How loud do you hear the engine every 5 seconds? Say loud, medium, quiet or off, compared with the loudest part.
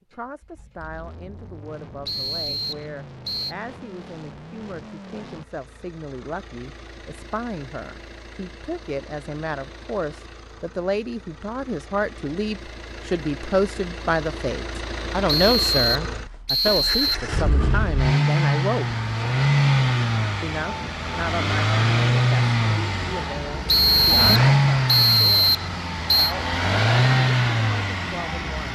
quiet, quiet, quiet, loud, loud, loud.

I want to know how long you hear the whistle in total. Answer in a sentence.
The whistle can be heard for 6 seconds in total.